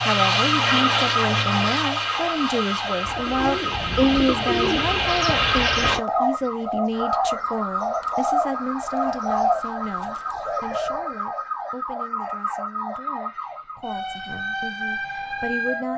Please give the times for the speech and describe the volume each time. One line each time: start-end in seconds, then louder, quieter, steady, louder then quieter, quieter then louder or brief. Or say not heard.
0.1-15.9 quieter.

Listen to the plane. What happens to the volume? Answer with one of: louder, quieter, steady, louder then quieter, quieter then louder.
quieter then louder.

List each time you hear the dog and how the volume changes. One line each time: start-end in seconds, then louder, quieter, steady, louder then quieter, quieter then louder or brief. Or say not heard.
not heard.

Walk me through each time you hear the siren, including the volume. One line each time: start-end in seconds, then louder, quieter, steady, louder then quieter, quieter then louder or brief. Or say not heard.
0.0-15.9 steady.